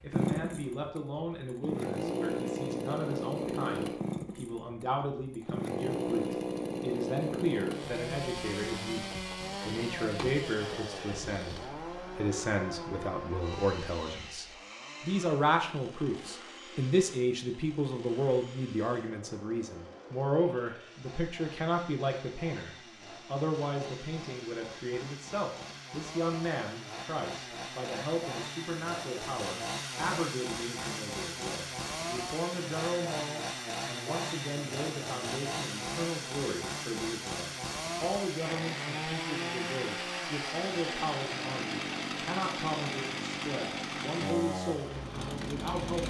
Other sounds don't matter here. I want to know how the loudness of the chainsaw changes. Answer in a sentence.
The volume of the chainsaw goes down, then up.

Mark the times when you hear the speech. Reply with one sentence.
You can hear the speech from 0.0 to 46.0 s.